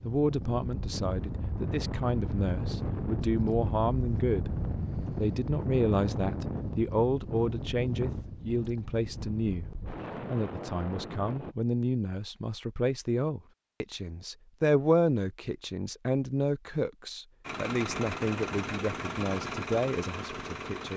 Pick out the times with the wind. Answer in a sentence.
You can hear the wind from 0.0 to 11.6 s.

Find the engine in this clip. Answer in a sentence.
You can hear the engine from 17.4 to 20.9 s.